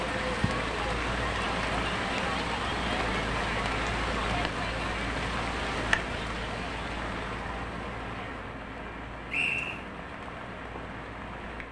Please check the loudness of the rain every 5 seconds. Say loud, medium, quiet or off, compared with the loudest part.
loud, loud, medium.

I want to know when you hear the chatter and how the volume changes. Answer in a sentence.
You can hear the chatter from 0.0 to 8.4 s, getting quieter.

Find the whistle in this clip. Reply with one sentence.
You can hear the whistle from 9.3 to 9.8 s.